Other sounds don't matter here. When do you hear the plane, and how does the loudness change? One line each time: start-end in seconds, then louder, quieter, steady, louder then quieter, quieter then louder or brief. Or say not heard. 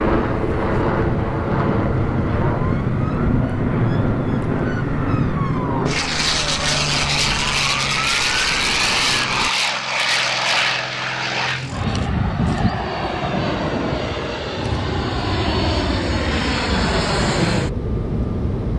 0.0-18.7 steady.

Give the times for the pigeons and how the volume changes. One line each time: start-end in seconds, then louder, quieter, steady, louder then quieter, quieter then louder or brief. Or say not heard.
not heard.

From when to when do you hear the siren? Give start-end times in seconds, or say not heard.
0.0-9.5.